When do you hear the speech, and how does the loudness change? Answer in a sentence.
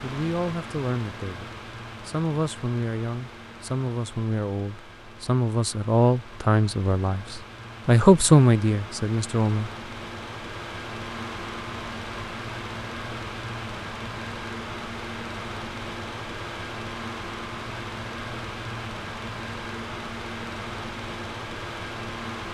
The speech can be heard from 0.0 to 9.7 s, getting louder.